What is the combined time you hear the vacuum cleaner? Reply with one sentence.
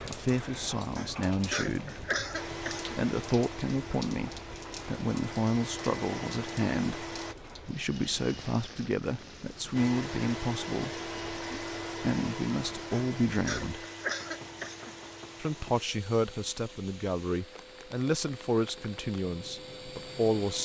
The vacuum cleaner can be heard for 16 seconds in total.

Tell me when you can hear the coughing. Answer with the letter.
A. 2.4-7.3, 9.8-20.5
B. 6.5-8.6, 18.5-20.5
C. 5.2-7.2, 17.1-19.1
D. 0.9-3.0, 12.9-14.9
D.